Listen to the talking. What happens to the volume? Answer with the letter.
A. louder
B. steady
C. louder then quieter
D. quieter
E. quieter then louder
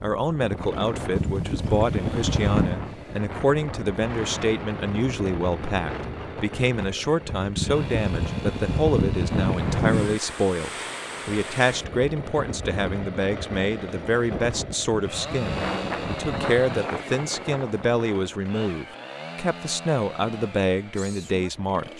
B.